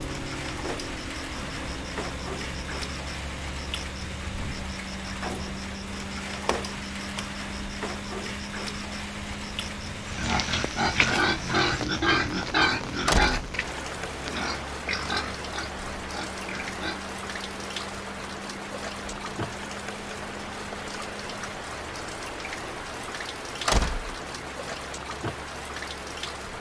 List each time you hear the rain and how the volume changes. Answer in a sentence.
You can hear the rain from 0.0 to 26.5 s, at a steady volume.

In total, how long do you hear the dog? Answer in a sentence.
You can't hear the dog here.